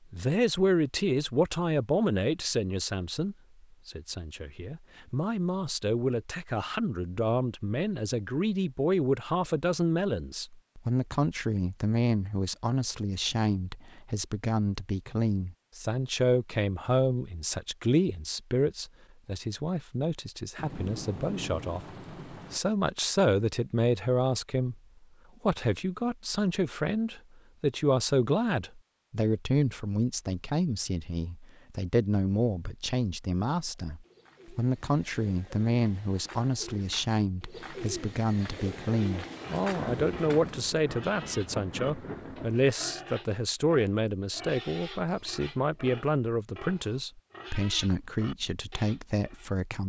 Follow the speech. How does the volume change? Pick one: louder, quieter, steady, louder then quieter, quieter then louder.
steady.